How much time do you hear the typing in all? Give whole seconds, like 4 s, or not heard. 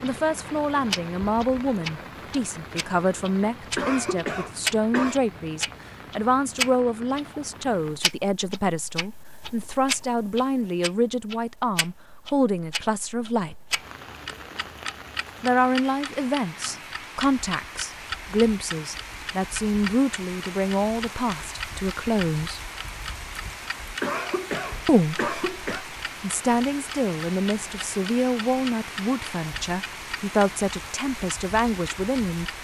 not heard.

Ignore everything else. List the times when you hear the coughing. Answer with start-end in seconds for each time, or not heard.
3.8-5.2, 24.0-25.9.